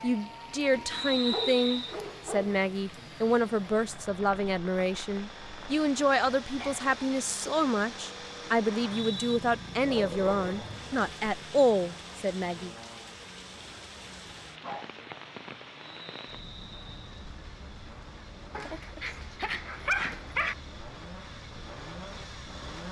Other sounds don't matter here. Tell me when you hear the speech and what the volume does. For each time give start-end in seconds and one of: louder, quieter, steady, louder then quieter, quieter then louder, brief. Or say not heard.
0.0-12.8 steady.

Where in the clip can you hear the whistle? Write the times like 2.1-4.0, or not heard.
0.9-1.9, 8.7-9.4, 15.8-17.2.